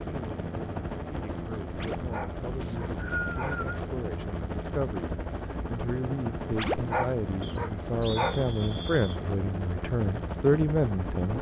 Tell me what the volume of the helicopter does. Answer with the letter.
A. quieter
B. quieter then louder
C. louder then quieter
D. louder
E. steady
E.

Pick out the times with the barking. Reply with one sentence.
You can hear the barking from 1.7 to 3.6 s and from 6.5 to 8.4 s.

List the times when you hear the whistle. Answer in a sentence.
The whistle can be heard from 2.6 to 3.8 s and from 7.4 to 9.2 s.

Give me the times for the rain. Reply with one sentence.
You can't hear the rain here.